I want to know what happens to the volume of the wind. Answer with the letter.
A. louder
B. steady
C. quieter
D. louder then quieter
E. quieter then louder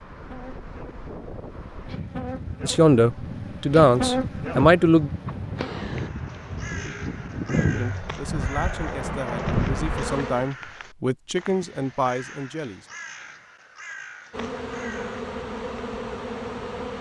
A.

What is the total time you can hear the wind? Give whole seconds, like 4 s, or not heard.
10 s.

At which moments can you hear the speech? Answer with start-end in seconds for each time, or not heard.
2.6-5.1, 7.8-12.8.